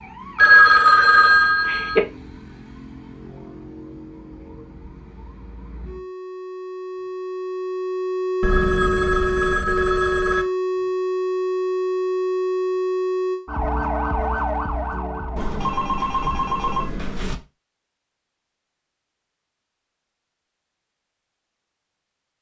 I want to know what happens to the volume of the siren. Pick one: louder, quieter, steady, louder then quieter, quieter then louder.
louder.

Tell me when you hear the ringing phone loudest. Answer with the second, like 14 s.
1 s.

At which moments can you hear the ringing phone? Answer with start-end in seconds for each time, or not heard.
0.3-2.0, 8.4-10.4, 15.3-17.4.